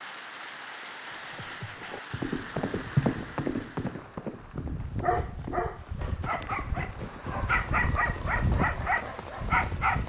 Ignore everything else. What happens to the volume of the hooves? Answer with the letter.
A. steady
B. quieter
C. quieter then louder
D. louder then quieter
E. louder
D.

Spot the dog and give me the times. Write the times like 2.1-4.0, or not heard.
4.4-10.0.